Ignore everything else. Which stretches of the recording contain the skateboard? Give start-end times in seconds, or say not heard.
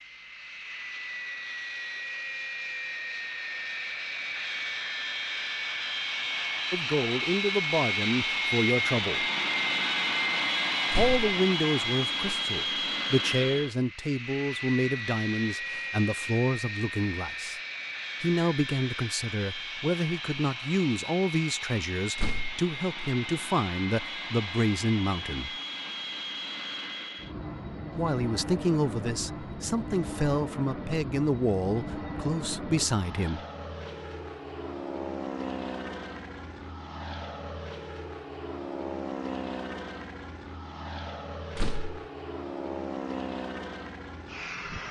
not heard.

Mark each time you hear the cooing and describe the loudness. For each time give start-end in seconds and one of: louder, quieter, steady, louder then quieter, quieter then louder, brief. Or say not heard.
not heard.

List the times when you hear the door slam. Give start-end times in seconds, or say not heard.
10.9-11.3, 22.1-22.6, 41.5-42.0.